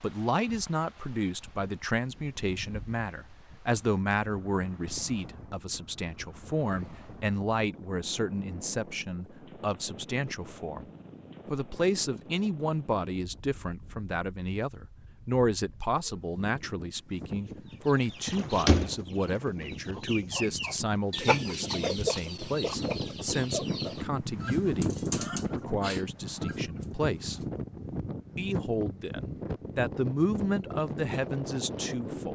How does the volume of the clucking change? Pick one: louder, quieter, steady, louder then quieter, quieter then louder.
quieter.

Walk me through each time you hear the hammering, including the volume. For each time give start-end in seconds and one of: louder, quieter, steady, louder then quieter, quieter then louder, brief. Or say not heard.
not heard.